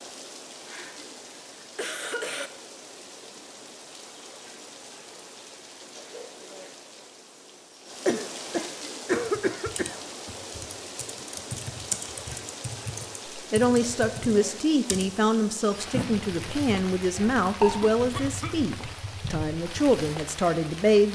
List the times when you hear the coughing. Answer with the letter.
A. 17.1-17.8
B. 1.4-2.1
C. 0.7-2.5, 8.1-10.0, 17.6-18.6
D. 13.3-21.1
C.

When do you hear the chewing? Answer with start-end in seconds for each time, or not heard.
17.1-17.8.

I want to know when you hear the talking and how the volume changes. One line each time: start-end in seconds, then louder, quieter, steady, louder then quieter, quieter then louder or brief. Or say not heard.
13.3-21.1 steady.